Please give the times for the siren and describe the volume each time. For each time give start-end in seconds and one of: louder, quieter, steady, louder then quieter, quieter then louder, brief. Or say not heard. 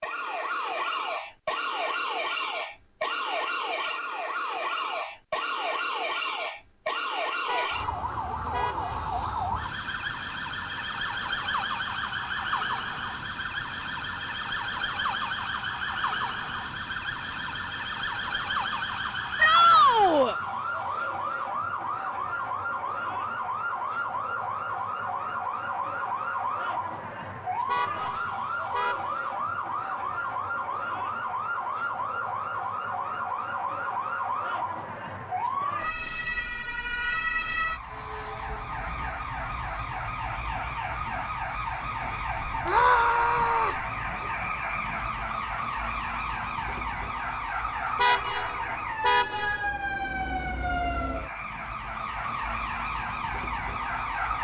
0.0-54.3 steady.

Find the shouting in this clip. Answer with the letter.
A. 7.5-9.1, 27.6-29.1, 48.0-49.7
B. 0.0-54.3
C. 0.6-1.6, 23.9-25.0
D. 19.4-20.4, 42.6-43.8
D.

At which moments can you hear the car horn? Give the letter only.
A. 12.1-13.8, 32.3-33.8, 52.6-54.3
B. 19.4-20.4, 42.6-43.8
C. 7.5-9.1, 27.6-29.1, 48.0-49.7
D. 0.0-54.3
C.